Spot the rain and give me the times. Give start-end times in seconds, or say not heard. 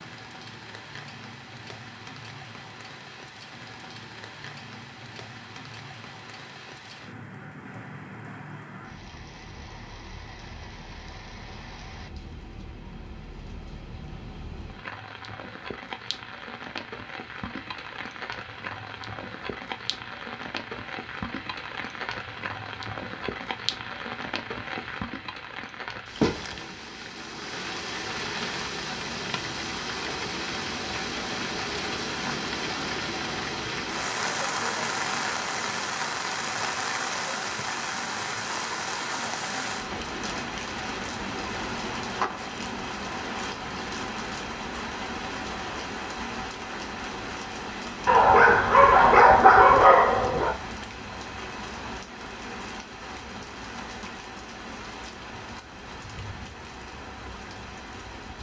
0.0-58.3.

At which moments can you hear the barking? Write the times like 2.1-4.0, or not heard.
48.0-50.5.